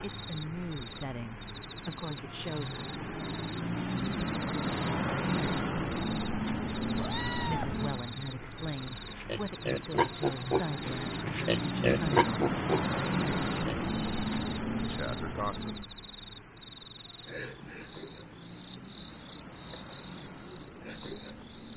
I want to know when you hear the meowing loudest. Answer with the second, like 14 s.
7 s.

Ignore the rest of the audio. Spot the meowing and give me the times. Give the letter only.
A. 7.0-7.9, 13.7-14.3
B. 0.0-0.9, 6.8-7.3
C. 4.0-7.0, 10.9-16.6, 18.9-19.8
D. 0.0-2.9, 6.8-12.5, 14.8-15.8
A.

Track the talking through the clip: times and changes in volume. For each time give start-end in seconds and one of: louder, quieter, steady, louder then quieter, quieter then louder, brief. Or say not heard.
0.0-2.9 brief
6.8-12.5 steady
14.8-15.8 brief.